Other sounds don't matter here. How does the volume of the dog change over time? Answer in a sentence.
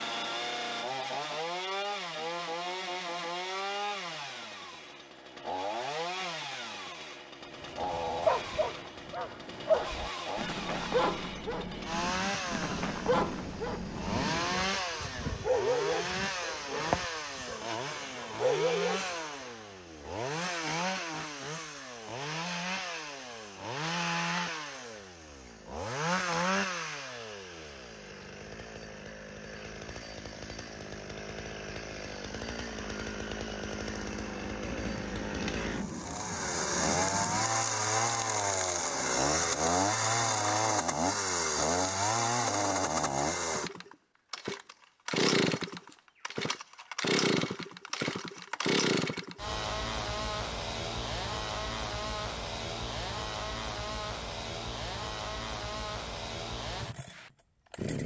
The loudness of the dog stays about the same.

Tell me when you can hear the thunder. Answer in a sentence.
The thunder can be heard from 12.0 to 14.8 s and from 34.6 to 37.5 s.